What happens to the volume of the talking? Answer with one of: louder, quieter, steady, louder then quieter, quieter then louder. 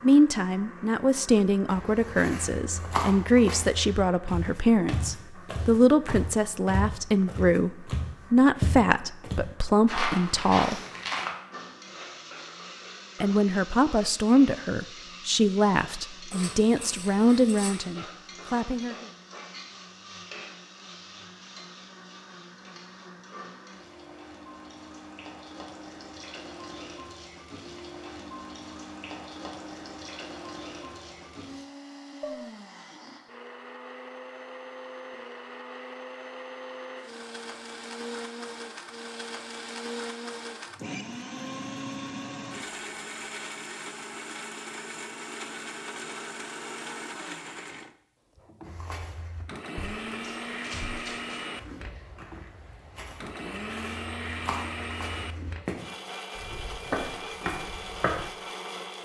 steady.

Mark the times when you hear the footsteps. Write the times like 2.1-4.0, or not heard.
1.6-11.3, 48.6-58.2.